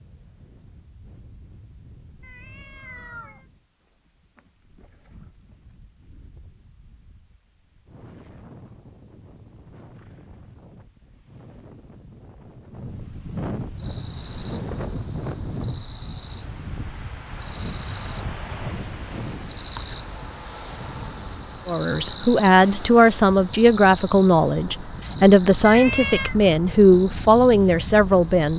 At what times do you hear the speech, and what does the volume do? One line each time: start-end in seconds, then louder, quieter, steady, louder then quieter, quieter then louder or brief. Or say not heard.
21.6-28.5 steady.